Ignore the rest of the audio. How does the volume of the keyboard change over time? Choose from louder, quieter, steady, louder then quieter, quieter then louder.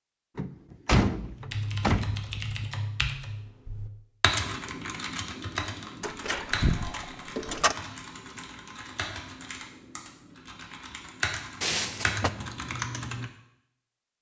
quieter then louder.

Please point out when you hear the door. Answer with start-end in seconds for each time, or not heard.
0.3-2.6, 6.0-7.8, 11.6-12.3.